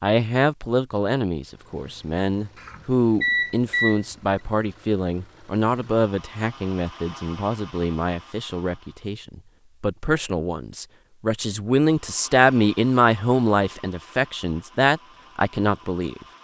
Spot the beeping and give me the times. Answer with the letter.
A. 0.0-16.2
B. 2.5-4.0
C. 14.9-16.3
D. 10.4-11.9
B.